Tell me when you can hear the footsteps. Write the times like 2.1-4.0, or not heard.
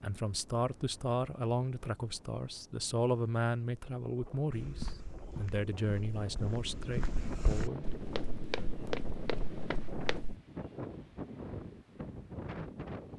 4.5-10.3.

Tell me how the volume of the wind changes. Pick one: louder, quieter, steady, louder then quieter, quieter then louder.
louder.